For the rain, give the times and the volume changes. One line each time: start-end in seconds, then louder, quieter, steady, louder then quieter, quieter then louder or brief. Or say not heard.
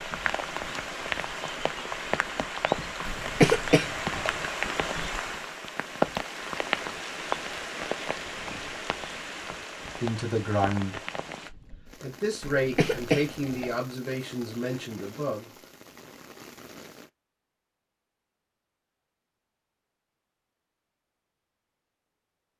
0.0-17.1 quieter.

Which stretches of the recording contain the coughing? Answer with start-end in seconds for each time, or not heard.
3.0-4.3, 12.4-13.8.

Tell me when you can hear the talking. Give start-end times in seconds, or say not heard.
10.0-11.0, 12.0-15.6.